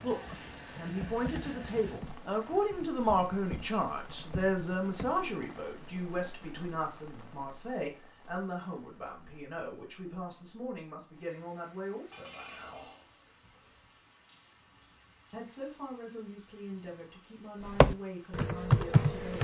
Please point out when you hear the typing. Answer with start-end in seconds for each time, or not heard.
0.2-5.3, 17.6-19.3.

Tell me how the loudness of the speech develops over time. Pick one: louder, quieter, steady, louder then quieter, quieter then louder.
quieter.